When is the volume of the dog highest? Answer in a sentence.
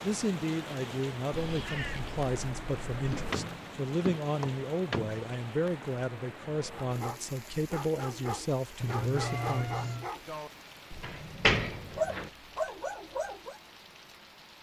The loudest moment of the dog is at 12 seconds.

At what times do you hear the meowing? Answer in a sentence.
The meowing can be heard from 1.3 to 3.4 s and from 8.8 to 10.1 s.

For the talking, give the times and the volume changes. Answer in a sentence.
The talking can be heard from 0.0 to 9.8 s, at a steady volume.